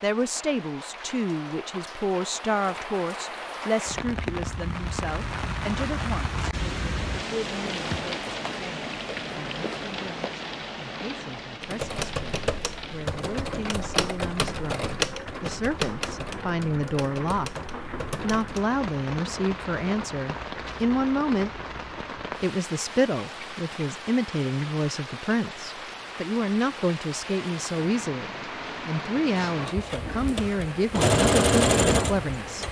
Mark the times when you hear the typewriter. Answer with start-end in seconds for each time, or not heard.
11.6-18.6.